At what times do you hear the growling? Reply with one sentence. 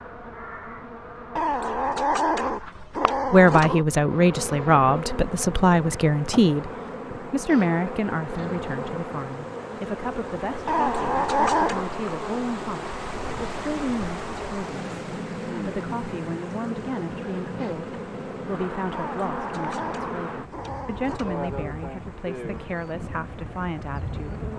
You can hear the growling from 1.4 to 3.9 s, from 10.7 to 11.9 s and from 18.9 to 21.6 s.